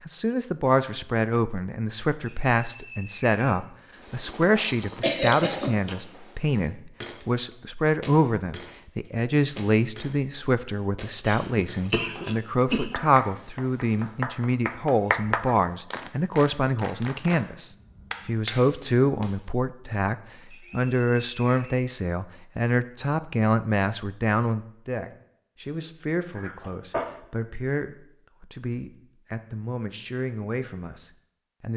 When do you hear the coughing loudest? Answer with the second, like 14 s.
5 s.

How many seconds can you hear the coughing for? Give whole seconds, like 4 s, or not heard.
4 s.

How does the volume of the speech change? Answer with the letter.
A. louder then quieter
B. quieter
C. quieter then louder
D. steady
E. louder
B.